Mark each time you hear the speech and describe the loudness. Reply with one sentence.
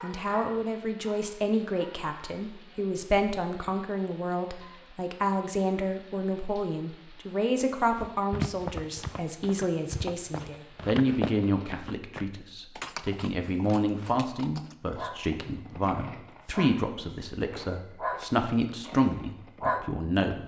The speech can be heard from 0.0 to 20.4 s, at a steady volume.